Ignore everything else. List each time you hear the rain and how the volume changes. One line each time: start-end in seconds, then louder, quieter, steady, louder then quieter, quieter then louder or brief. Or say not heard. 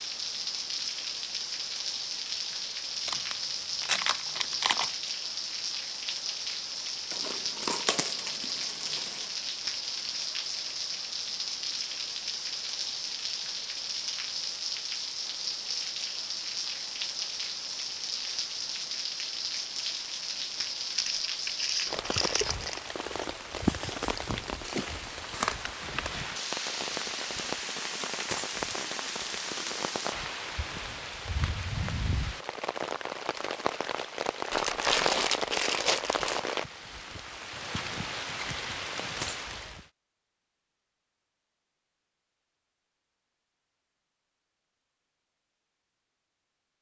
0.0-39.9 steady.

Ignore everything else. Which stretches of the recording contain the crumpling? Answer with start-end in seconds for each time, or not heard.
3.0-4.9, 20.9-22.9, 34.5-36.4.